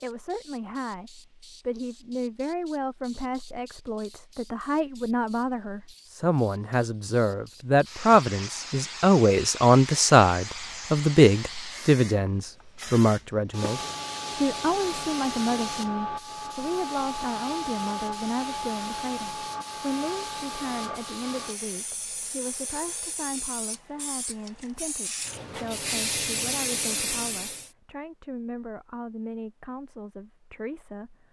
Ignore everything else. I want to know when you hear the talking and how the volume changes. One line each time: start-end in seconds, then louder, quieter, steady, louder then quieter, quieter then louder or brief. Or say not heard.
0.0-31.2 louder then quieter.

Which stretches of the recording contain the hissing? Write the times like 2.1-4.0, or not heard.
0.0-27.7.